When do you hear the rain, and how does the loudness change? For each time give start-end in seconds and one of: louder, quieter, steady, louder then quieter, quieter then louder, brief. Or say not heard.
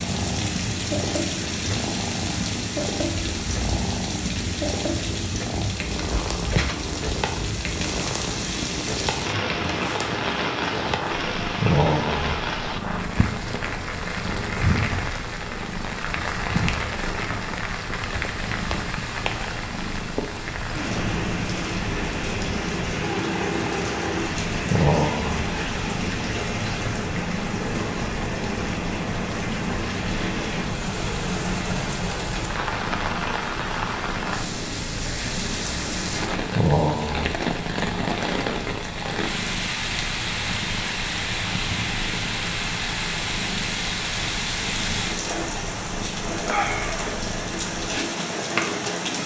0.0-49.2 steady.